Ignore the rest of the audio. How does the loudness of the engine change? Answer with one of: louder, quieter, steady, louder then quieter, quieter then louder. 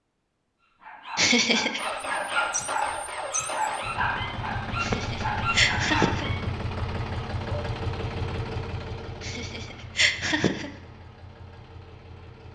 quieter.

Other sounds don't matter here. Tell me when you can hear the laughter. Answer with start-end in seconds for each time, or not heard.
1.1-1.8, 4.8-6.3, 9.2-10.7.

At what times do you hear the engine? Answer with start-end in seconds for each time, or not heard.
1.8-12.5.